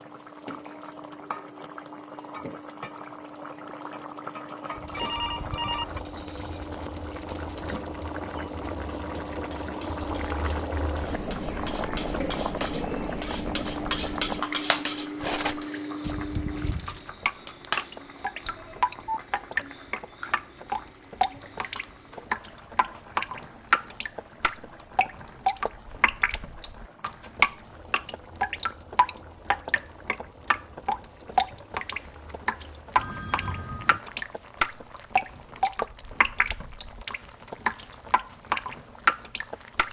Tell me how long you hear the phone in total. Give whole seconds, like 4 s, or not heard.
3 s.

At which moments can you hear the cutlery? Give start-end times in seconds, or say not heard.
4.8-17.1.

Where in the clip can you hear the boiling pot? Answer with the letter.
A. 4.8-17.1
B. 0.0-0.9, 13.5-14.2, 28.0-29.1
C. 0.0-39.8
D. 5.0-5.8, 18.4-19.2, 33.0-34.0
C.